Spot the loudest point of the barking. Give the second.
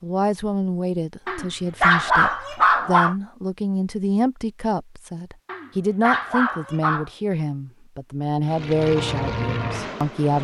2 s.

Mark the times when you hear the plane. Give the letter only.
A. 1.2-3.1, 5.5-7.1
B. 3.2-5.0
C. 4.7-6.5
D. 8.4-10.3
D.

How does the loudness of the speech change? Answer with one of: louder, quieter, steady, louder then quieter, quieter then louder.
steady.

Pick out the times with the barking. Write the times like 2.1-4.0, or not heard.
1.2-3.1, 5.5-7.1.